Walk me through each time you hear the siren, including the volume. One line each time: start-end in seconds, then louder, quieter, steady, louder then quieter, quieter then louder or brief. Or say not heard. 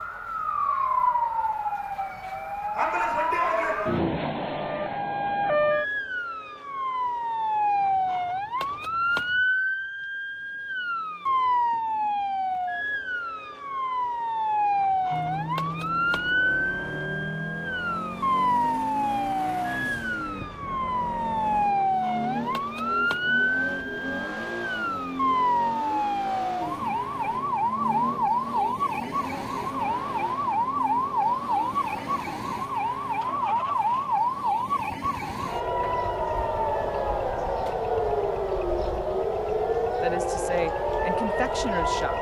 0.0-42.1 steady.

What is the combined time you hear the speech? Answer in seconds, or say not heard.
2 s.